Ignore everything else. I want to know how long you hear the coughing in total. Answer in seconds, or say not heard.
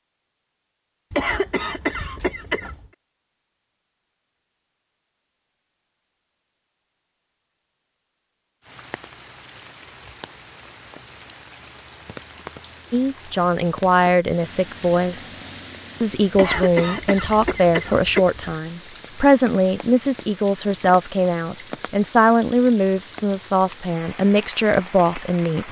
4 s.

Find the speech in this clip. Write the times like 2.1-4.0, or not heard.
12.9-15.3, 16.0-25.6.